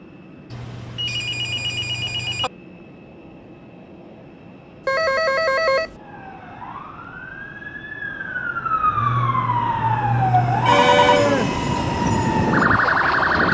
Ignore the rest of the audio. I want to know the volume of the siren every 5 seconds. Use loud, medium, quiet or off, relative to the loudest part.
off, medium, loud.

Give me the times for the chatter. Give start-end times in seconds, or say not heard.
not heard.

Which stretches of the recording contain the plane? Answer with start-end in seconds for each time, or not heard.
0.0-13.4.